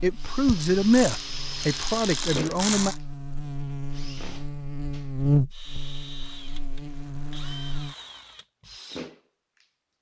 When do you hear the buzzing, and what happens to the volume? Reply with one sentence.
You can hear the buzzing from 0.0 to 8.0 s, getting louder then quieter.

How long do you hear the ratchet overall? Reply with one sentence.
The ratchet can be heard for 5 seconds in total.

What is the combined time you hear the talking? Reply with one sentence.
The talking can be heard for 3 seconds in total.